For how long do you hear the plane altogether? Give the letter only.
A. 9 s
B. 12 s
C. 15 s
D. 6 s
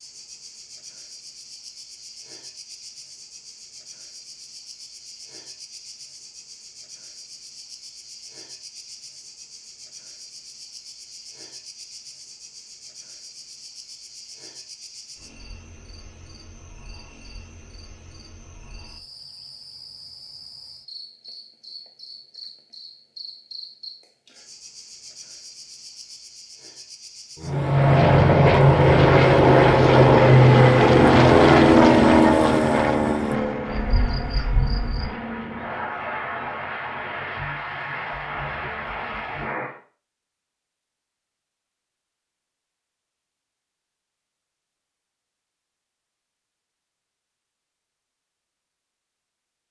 B.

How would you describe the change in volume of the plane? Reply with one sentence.
The volume of the plane goes down.